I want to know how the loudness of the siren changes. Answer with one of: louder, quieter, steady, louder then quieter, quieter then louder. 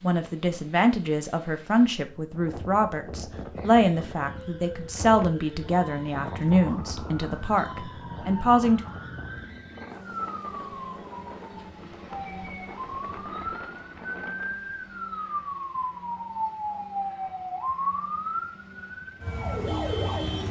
louder.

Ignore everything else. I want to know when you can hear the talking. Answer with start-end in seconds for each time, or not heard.
0.0-8.8.